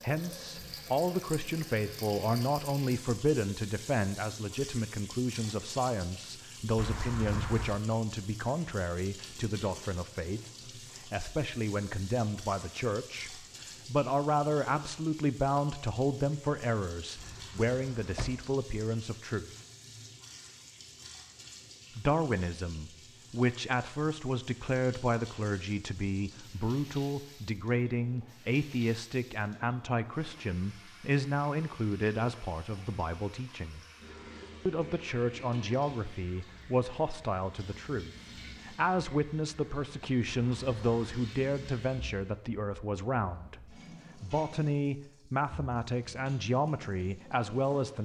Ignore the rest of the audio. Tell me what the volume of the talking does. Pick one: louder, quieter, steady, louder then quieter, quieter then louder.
steady.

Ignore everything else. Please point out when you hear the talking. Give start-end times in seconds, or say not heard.
0.0-19.5, 21.9-33.9, 34.6-47.9.